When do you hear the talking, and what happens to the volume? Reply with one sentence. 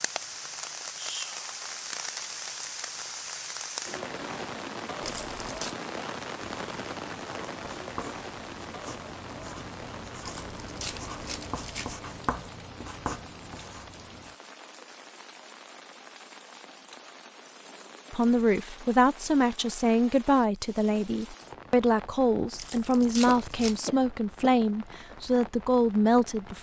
You can hear the talking from 18.1 to 26.5 s, at a steady volume.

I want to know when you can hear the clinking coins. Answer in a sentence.
The clinking coins can't be heard in this clip.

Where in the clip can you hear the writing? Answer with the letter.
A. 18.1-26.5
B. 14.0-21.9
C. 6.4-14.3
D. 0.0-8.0
C.